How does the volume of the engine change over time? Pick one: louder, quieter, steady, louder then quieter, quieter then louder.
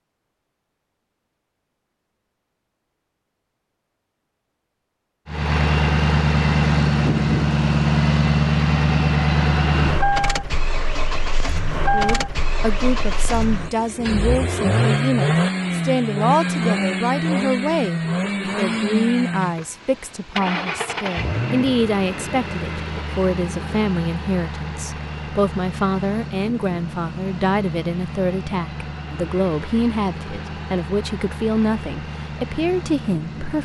quieter.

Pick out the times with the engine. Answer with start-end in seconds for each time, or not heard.
5.2-33.6.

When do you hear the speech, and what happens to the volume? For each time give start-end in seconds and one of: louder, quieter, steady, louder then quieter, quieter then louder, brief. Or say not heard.
11.8-33.6 steady.